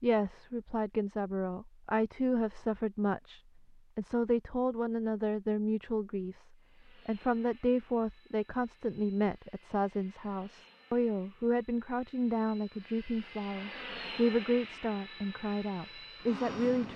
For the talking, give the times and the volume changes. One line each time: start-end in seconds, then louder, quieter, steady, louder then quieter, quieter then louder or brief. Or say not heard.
0.0-16.9 steady.